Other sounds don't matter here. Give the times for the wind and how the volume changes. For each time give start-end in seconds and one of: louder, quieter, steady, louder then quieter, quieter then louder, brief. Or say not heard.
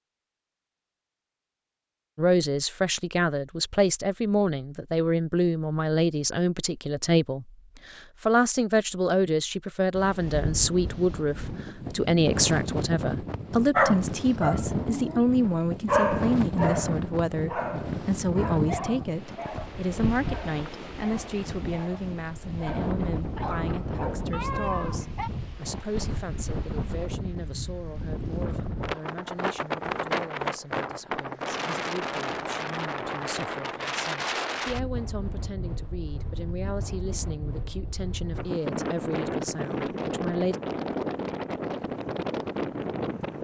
9.9-43.3 steady.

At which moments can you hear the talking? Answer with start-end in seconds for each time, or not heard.
2.1-40.6.